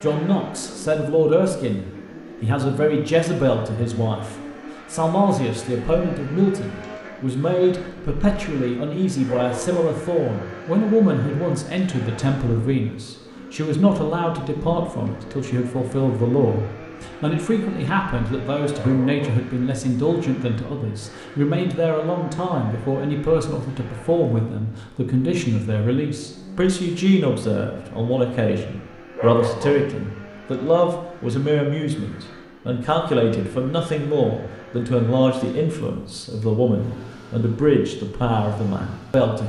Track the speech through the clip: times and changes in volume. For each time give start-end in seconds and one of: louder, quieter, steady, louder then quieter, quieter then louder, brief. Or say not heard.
0.0-39.4 steady.